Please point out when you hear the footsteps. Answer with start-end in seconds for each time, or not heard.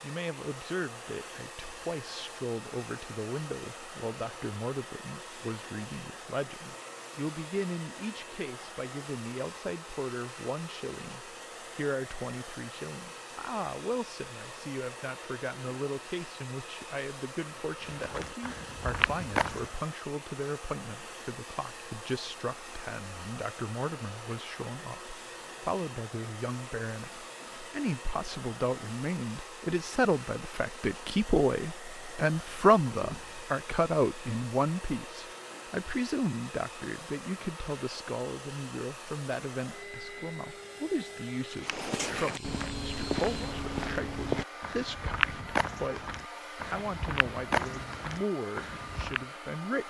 17.9-19.8, 41.6-49.2.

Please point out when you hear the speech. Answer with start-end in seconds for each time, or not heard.
0.0-49.8.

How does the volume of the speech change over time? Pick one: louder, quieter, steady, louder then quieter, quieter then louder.
louder then quieter.